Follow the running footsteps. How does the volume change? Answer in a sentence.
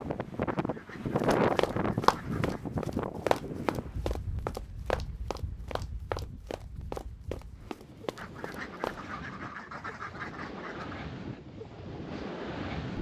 The volume of the running footsteps goes down.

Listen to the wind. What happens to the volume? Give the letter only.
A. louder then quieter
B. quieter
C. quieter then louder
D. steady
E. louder
C.